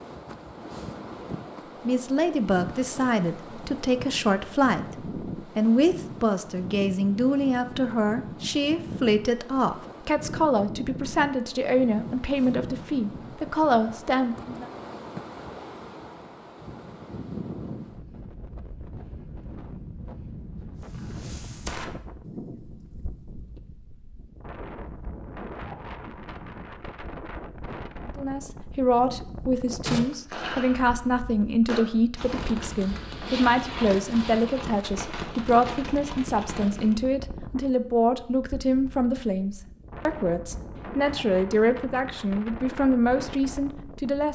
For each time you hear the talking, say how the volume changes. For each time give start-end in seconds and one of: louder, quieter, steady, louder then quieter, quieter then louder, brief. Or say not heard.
1.9-14.7 steady
28.1-44.3 steady.